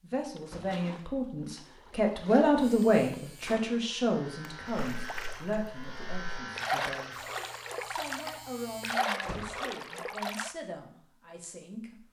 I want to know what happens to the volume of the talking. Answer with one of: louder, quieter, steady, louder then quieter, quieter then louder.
quieter.